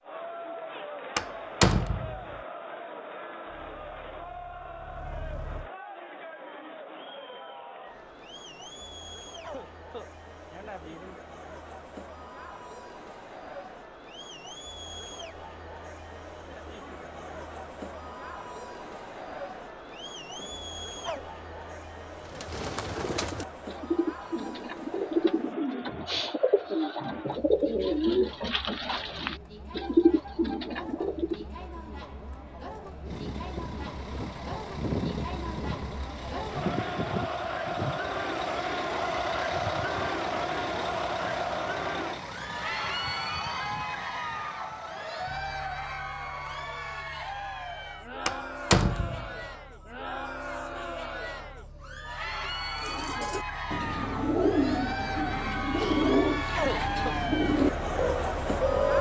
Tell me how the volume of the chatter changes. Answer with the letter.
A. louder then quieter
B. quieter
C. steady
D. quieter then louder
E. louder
E.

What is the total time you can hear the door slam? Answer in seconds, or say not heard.
2 s.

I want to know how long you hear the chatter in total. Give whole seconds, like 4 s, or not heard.
59 s.